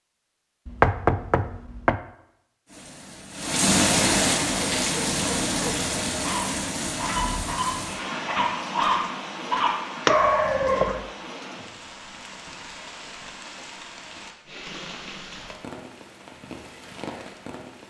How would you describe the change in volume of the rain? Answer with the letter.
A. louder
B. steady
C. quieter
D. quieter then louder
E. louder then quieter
C.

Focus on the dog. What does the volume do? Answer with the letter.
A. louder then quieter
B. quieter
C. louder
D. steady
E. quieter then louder
C.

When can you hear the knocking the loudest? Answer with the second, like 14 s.
1 s.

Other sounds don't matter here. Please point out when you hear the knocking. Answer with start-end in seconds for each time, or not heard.
0.7-2.0, 10.1-10.8.